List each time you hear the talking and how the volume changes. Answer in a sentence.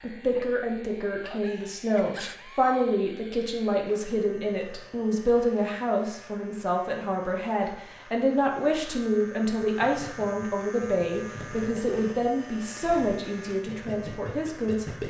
You can hear the talking from 0.0 to 14.8 s, at a steady volume.